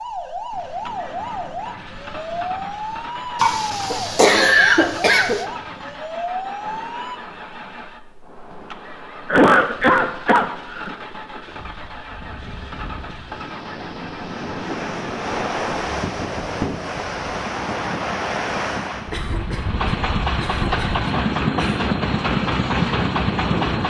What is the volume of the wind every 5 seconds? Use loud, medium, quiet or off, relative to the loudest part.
quiet, quiet, medium, loud, loud.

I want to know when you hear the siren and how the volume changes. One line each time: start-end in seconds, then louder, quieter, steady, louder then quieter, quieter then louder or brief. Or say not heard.
0.0-7.2 steady.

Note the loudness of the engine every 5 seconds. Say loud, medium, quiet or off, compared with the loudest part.
quiet, quiet, quiet, medium, loud.